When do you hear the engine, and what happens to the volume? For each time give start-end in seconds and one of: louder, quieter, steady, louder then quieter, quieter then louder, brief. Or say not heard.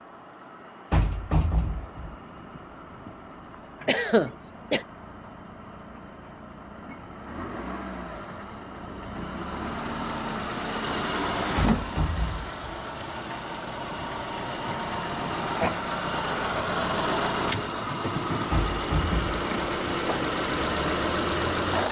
0.0-21.8 louder.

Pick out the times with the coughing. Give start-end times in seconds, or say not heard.
3.9-4.8.